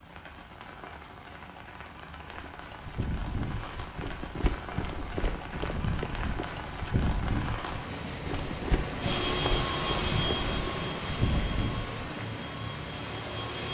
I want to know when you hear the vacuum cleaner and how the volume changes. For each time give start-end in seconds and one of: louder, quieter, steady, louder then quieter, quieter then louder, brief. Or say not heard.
9.0-13.7 quieter.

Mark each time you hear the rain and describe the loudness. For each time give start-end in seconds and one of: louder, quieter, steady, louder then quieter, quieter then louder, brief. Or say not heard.
0.0-13.7 louder.